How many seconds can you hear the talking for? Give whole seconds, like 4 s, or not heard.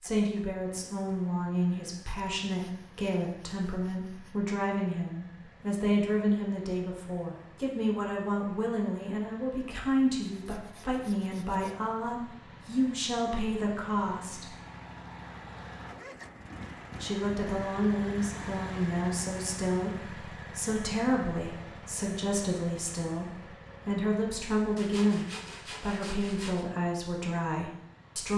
26 s.